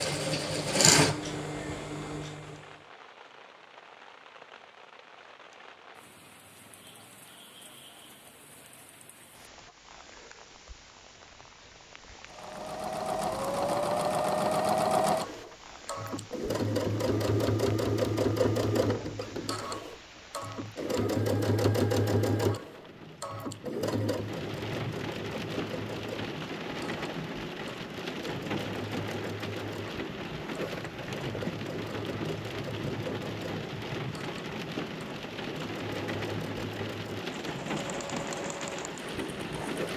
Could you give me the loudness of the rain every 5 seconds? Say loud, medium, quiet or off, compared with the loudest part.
quiet, quiet, quiet, quiet, medium, loud, loud, loud.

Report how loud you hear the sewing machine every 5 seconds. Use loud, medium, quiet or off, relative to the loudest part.
loud, off, loud, loud, loud, quiet, quiet, quiet.